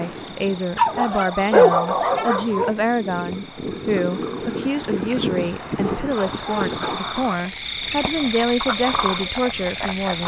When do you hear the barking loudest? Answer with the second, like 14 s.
2 s.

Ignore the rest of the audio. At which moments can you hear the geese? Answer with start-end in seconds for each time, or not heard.
not heard.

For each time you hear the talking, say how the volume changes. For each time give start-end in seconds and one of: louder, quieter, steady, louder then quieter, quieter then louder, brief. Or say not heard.
0.0-10.2 steady.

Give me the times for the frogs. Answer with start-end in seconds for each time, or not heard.
0.0-10.2.